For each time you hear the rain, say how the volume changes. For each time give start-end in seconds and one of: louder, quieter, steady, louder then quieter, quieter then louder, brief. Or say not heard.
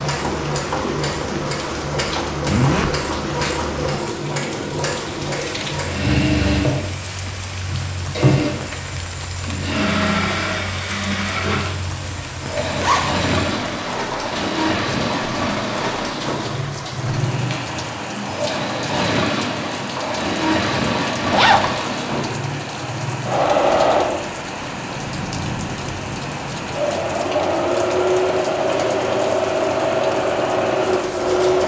0.0-31.6 steady.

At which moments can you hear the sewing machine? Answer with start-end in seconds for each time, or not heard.
0.0-31.6.